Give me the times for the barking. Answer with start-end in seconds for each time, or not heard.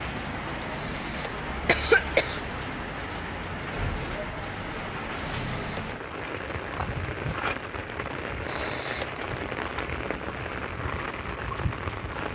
not heard.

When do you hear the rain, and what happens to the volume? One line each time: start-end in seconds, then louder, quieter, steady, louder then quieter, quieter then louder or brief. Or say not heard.
0.0-12.3 steady.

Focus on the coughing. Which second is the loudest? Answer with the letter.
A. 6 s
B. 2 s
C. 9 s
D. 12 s
B.